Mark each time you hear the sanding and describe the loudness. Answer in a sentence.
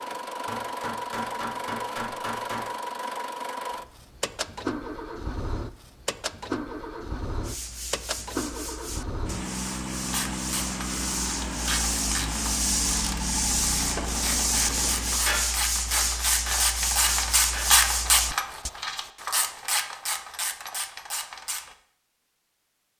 You can hear the sanding from 7.4 to 18.7 s, getting louder.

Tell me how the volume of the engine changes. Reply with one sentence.
The loudness of the engine stays about the same.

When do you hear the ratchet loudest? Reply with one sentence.
The volume of the ratchet peaks at 18 seconds.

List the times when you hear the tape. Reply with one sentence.
The tape can't be heard in this clip.